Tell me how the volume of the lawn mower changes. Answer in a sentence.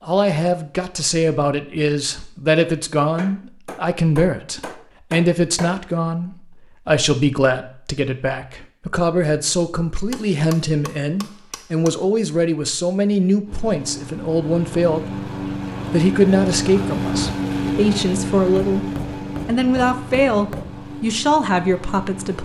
The volume of the lawn mower goes up, then down.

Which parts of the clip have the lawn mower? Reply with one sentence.
The lawn mower can be heard from 13.4 to 22.4 s.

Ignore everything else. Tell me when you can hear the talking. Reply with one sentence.
The talking can be heard from 0.0 to 15.3 s and from 15.9 to 22.4 s.